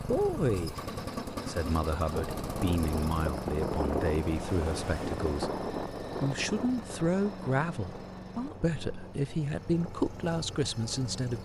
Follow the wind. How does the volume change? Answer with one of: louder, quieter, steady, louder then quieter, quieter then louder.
louder then quieter.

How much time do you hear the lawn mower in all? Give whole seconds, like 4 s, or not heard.
11 s.